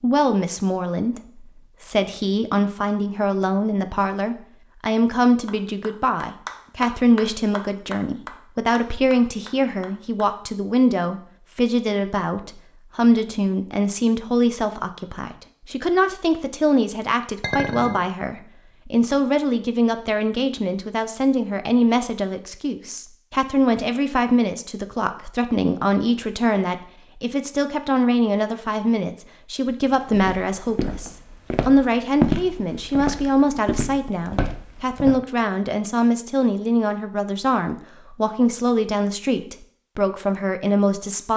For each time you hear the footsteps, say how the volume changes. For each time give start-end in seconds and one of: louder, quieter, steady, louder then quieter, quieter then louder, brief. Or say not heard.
30.1-35.2 louder then quieter.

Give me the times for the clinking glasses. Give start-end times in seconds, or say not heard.
17.4-18.1.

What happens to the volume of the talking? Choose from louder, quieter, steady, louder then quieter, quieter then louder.
steady.